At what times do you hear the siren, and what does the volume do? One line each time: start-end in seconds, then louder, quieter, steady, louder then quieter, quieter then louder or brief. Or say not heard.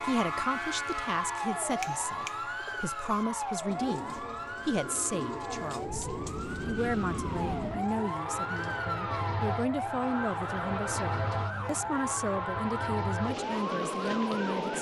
0.0-14.7 steady.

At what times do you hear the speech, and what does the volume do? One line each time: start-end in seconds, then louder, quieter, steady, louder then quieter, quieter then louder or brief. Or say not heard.
0.0-14.7 steady.